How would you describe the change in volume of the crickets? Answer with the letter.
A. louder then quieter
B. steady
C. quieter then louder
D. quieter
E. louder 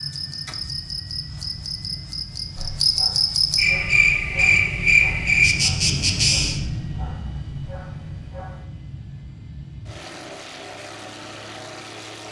E.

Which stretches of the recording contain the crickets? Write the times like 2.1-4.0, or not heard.
0.0-6.6.